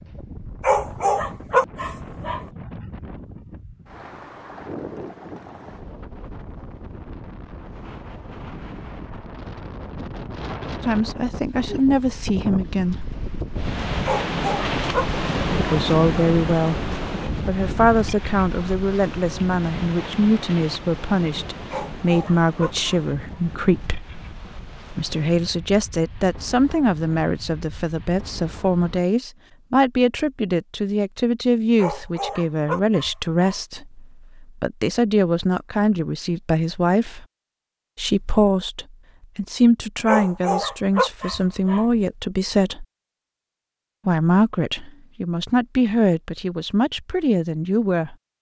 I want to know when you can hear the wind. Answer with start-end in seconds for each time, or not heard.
0.0-29.1.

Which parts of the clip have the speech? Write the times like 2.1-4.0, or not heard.
10.8-13.1, 15.6-16.8, 17.4-24.1, 24.9-37.2, 38.0-42.9, 44.0-48.1.